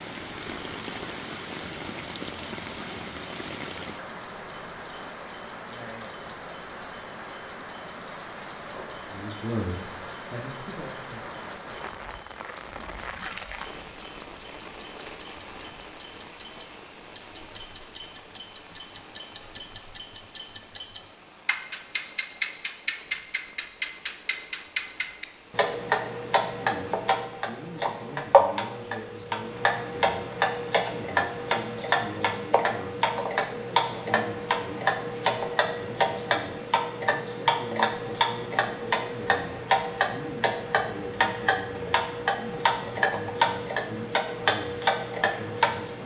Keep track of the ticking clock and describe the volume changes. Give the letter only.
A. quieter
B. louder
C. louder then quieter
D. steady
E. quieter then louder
B.